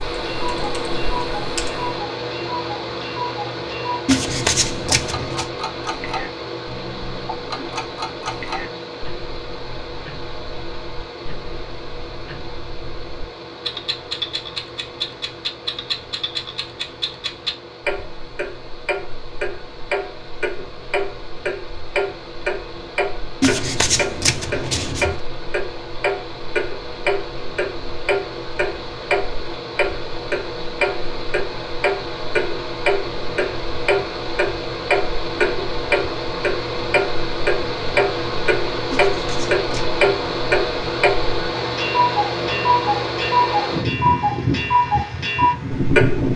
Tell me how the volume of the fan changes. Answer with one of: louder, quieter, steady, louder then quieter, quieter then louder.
quieter then louder.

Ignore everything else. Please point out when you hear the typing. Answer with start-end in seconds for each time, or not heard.
0.0-1.9.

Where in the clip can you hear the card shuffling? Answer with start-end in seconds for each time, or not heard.
4.0-5.5, 23.4-25.2, 38.9-39.9.